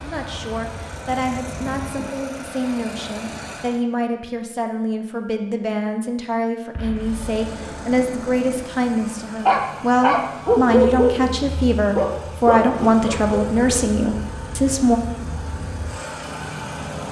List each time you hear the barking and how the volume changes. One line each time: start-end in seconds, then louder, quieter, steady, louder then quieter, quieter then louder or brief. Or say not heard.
9.4-13.9 quieter.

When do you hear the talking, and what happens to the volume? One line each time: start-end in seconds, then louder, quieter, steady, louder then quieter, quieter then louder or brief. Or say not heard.
0.0-15.0 louder.